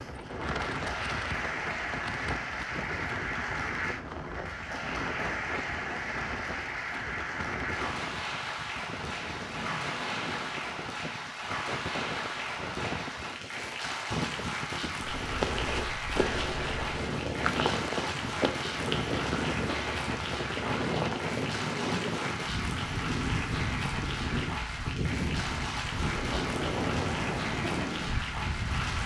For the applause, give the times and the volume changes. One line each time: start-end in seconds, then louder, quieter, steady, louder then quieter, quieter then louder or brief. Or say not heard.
0.0-29.0 steady.